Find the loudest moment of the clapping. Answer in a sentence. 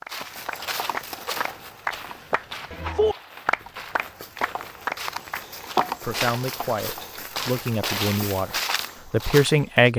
The loudest moment of the clapping is at 3 seconds.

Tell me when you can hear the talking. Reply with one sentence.
You can hear the talking from 6.0 to 9.9 s.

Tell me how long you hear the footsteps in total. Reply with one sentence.
You can hear the footsteps for 10 seconds altogether.